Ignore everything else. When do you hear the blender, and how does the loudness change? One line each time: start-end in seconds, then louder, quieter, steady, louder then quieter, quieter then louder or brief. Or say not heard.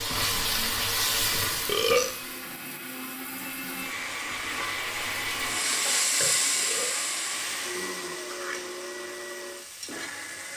0.3-10.5 louder then quieter.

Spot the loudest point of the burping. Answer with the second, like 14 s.
2 s.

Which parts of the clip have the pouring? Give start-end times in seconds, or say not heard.
not heard.